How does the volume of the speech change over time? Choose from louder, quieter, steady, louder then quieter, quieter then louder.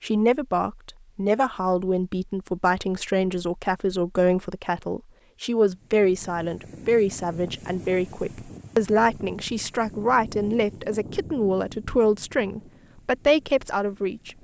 steady.